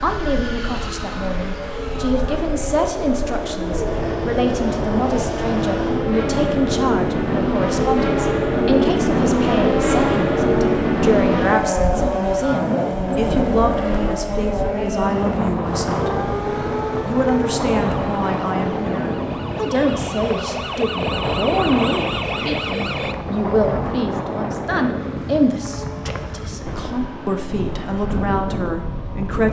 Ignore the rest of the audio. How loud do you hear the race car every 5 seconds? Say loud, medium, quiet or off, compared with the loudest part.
medium, loud, loud, medium, quiet, quiet.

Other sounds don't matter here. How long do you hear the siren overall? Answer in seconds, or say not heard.
7 s.